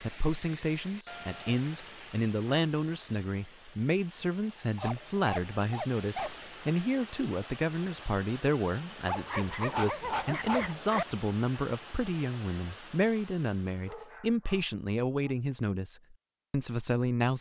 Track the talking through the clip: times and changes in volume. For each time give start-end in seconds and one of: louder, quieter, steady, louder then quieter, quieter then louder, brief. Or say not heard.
0.0-17.3 steady.